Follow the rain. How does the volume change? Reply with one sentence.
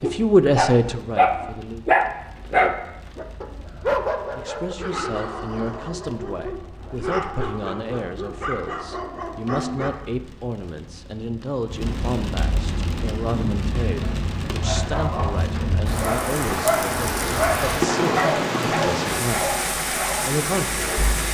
The loudness of the rain goes up.